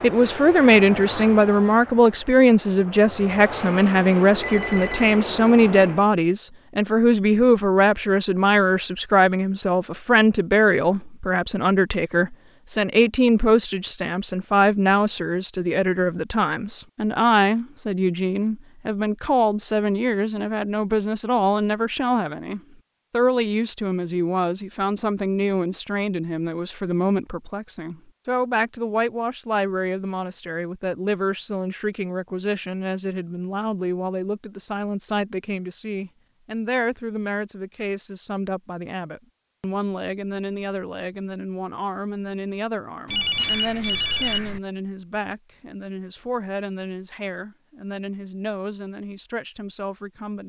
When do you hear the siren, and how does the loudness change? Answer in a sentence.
You can't hear the siren here.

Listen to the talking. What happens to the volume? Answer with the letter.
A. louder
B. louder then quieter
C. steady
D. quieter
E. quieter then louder
D.